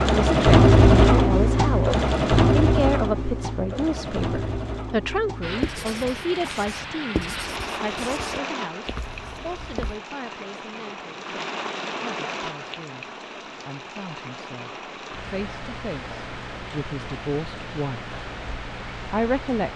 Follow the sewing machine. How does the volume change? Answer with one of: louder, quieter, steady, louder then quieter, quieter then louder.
quieter.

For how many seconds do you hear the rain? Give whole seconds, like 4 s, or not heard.
14 s.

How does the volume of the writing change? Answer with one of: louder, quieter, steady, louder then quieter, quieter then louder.
louder then quieter.